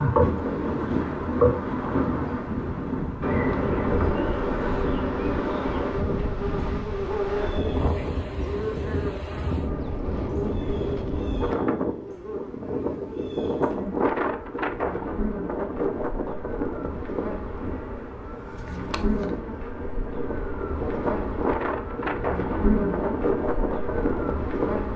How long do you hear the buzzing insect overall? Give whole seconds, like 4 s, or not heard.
25 s.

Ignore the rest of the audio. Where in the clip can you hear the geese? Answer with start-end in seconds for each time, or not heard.
not heard.